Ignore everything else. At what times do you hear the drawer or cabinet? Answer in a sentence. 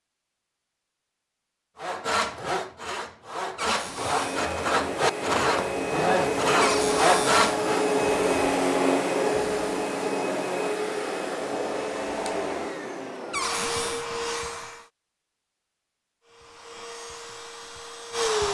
You can hear the drawer or cabinet from 3.5 to 4.5 s, from 6.6 to 7.5 s and from 13.3 to 14.1 s.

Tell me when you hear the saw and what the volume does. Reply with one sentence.
The saw can be heard from 1.8 to 7.9 s, getting louder.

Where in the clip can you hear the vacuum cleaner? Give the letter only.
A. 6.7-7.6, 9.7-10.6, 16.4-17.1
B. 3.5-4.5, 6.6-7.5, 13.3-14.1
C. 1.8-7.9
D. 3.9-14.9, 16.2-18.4
D.